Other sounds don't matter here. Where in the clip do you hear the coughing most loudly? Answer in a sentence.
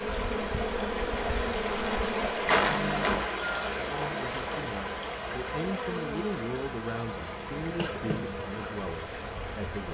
The volume of the coughing peaks at 3 seconds.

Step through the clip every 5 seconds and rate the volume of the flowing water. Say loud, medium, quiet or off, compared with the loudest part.
loud, medium.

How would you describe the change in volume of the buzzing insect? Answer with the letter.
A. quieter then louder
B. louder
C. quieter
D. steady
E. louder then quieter
C.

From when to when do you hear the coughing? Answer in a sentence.
You can hear the coughing from 2.5 to 3.2 s and from 7.6 to 8.3 s.